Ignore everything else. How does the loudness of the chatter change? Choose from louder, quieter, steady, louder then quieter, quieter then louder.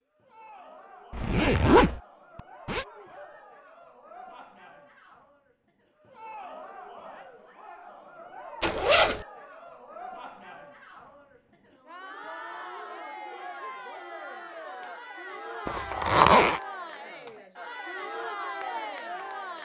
louder.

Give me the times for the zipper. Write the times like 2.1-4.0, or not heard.
1.1-2.9, 8.6-9.2, 15.7-16.6.